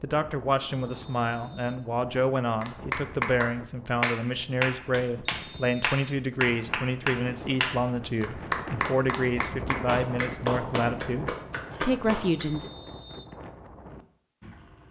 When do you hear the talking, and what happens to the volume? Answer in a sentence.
The talking can be heard from 0.0 to 12.7 s, at a steady volume.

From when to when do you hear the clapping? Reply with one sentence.
The clapping can be heard from 2.6 to 12.4 s.